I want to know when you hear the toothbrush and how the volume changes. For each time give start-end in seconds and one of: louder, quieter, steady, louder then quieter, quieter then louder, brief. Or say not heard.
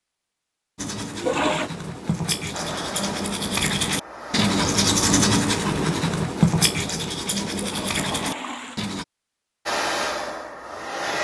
0.8-9.1 louder then quieter.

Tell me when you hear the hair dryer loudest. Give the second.
10 s.